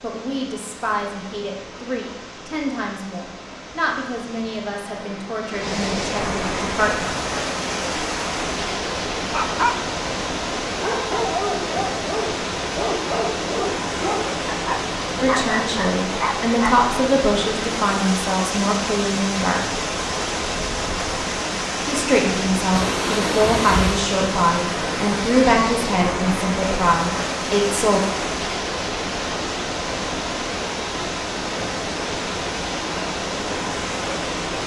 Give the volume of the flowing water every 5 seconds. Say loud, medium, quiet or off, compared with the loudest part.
quiet, loud, loud, loud, loud, loud, loud.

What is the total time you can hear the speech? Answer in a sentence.
You can hear the speech for 18 seconds altogether.